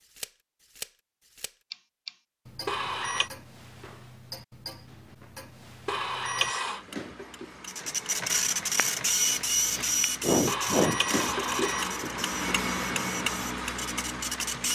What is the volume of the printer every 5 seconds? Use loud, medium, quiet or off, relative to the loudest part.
off, loud, medium.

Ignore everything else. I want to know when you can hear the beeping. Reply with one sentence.
You can hear the beeping from 2.6 to 3.3 s, from 5.8 to 6.8 s and from 10.4 to 12.1 s.